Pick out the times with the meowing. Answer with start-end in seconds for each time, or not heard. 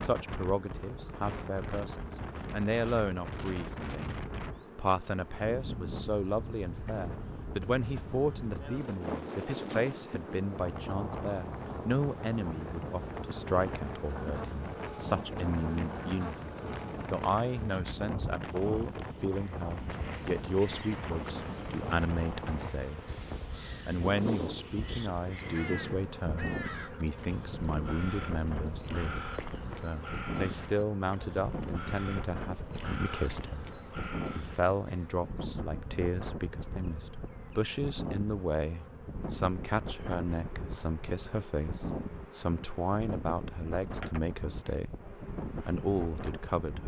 not heard.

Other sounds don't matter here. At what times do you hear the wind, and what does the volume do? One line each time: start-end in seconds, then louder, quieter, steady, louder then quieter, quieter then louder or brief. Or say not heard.
0.0-46.8 steady.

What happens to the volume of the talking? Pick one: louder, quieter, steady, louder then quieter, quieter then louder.
steady.